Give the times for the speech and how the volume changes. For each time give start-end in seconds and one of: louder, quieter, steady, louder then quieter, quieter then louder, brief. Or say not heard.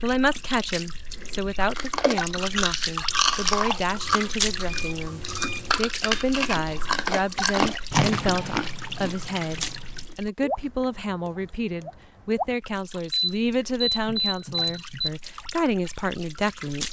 0.0-16.8 steady.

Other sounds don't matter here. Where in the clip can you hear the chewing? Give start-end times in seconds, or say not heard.
1.7-10.2.